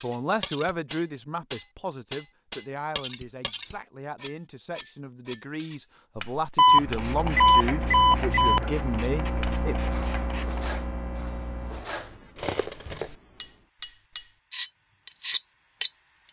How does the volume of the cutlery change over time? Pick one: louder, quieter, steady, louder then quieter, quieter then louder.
quieter then louder.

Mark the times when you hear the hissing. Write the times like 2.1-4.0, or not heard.
6.7-16.2.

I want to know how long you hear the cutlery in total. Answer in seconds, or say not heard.
15 s.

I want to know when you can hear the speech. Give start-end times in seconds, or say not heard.
0.0-9.8.